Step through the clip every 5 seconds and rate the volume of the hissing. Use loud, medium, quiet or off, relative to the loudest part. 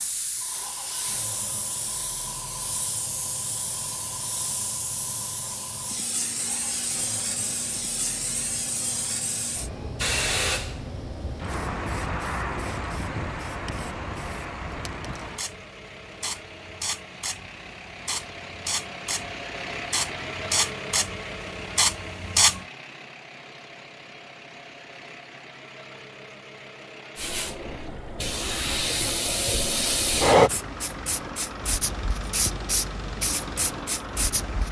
medium, medium, medium, medium, loud, loud, loud.